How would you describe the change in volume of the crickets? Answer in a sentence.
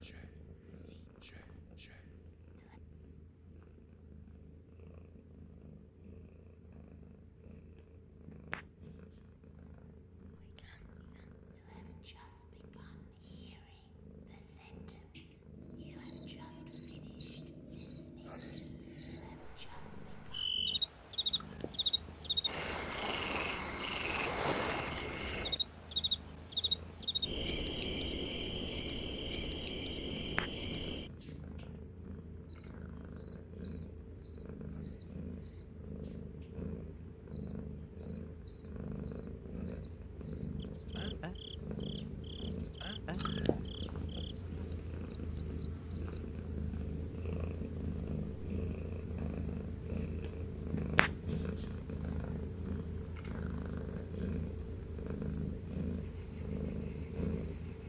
The loudness of the crickets goes down.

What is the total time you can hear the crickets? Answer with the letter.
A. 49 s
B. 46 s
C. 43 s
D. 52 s
C.